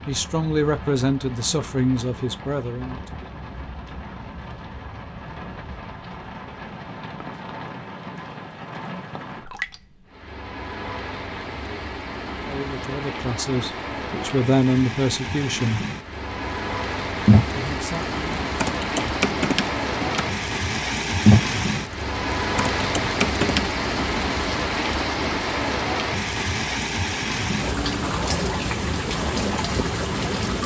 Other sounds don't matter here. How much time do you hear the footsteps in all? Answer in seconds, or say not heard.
not heard.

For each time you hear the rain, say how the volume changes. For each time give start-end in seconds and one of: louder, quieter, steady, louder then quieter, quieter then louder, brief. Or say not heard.
0.0-30.6 louder.